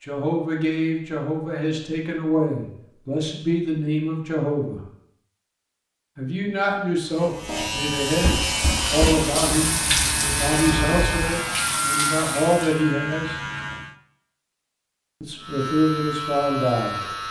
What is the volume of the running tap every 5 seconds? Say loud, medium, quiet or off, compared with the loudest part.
off, loud, loud, off.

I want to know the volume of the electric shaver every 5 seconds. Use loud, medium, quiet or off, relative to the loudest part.
off, loud, loud, loud.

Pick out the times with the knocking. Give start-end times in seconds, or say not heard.
8.2-9.2.